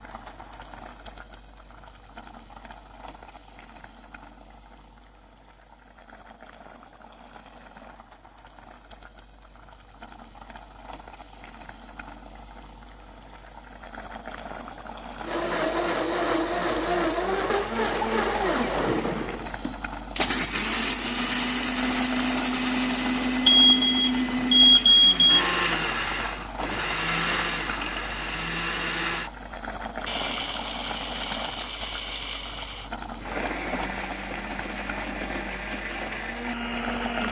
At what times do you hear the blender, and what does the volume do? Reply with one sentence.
You can hear the blender from 15.2 to 37.2 s, getting quieter.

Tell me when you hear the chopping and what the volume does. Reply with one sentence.
You can't hear the chopping here.